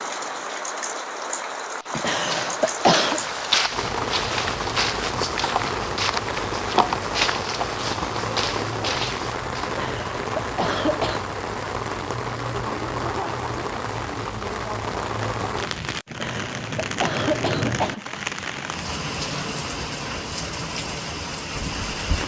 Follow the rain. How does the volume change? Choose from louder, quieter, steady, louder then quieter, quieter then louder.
steady.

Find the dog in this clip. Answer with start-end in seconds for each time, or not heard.
not heard.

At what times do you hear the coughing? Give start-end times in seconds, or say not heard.
1.9-3.2, 9.7-11.2, 16.1-18.2.